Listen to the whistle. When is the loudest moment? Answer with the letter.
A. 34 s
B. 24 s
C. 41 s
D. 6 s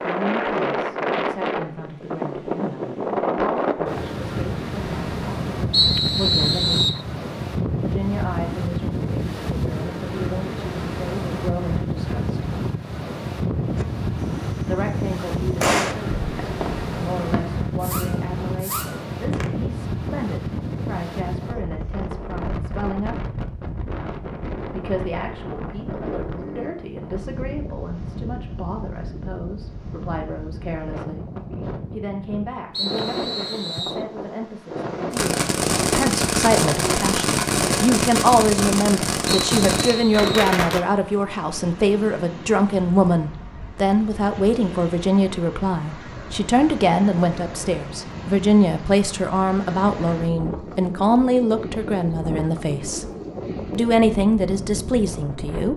D.